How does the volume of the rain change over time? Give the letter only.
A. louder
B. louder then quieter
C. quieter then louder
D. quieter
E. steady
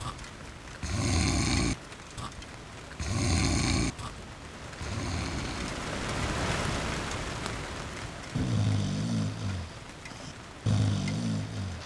B.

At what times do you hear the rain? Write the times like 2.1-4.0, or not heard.
0.0-11.8.